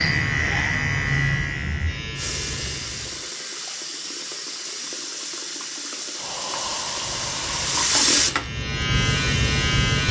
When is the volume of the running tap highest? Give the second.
8 s.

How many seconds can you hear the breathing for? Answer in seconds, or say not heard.
2 s.